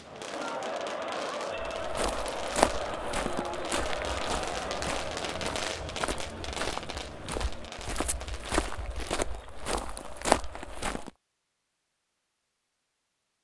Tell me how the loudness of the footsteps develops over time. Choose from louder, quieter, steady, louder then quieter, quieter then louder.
quieter then louder.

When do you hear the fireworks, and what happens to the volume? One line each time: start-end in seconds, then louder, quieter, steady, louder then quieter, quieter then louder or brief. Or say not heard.
0.0-8.8 louder then quieter.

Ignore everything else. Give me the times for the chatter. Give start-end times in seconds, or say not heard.
0.0-11.1.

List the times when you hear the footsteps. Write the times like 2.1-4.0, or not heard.
1.8-11.1.